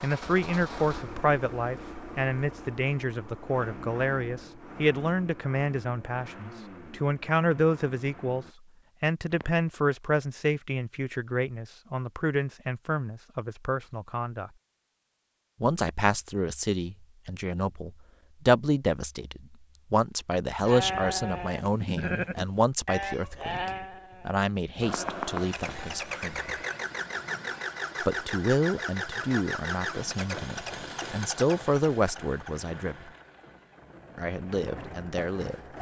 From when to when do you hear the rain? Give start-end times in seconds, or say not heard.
not heard.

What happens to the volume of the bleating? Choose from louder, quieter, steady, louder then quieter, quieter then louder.
quieter.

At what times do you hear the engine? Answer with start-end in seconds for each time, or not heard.
0.0-8.6, 24.8-35.7.